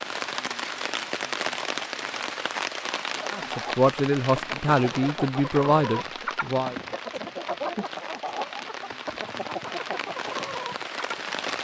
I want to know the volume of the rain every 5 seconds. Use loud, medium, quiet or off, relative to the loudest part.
loud, medium, loud.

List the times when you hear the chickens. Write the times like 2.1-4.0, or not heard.
3.4-11.5.